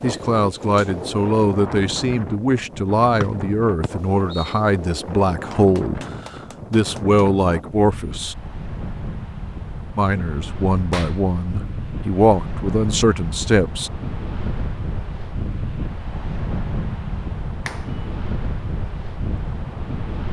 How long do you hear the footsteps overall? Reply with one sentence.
The footsteps can't be heard in this clip.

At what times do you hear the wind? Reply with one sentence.
You can hear the wind from 0.0 to 20.2 s.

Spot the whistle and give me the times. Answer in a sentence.
The whistle can be heard from 3.2 to 4.6 s.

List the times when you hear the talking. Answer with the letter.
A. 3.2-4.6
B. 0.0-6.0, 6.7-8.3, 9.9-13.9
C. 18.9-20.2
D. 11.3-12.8
B.